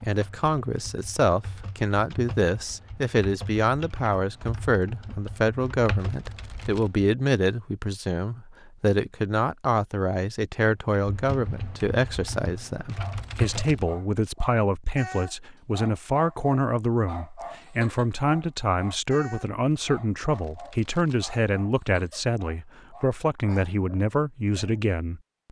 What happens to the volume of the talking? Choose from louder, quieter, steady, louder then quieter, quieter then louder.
steady.